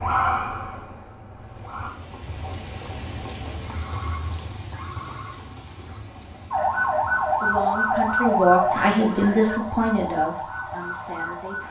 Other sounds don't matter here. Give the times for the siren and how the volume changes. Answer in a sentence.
You can hear the siren briefly from 0.0 to 1.9 s; and from 6.5 to 11.6 s, getting quieter.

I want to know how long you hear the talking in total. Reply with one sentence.
You can hear the talking for 4 seconds altogether.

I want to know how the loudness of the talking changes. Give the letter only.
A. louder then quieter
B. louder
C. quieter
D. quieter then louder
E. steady
A.